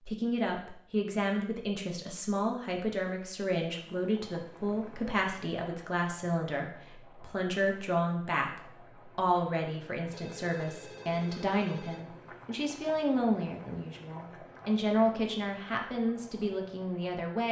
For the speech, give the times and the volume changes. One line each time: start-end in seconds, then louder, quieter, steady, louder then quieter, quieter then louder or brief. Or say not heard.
0.1-17.4 steady.